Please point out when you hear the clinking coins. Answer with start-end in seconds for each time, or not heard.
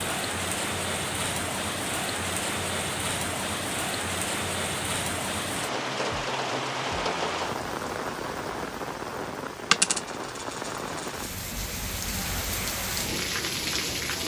9.7-11.3.